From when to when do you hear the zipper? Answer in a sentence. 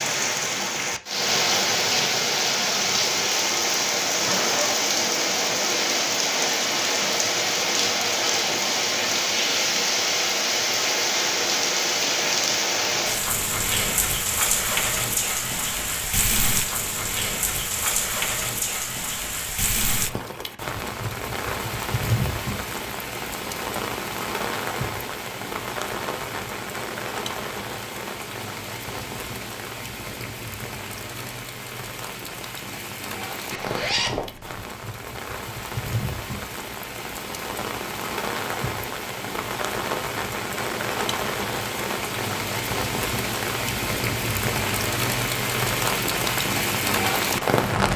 You can hear the zipper from 4.2 to 4.9 s and from 33.5 to 34.6 s.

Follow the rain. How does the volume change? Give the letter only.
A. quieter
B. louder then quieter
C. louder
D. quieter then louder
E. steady
D.